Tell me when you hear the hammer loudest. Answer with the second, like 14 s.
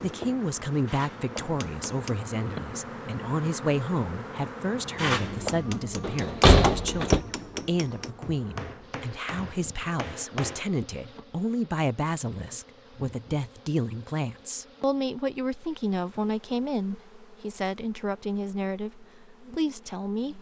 5 s.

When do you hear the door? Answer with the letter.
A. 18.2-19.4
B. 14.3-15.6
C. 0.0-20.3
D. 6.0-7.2
D.